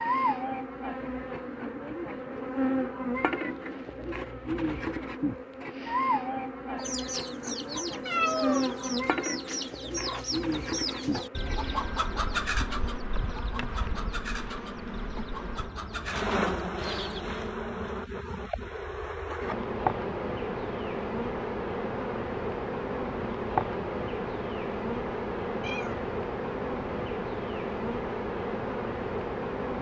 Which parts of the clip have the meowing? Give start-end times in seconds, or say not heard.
8.1-8.8, 25.6-26.1.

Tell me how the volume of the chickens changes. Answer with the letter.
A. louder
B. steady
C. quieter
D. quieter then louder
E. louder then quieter
E.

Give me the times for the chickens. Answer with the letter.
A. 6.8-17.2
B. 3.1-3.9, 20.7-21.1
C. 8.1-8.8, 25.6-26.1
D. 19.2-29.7
A.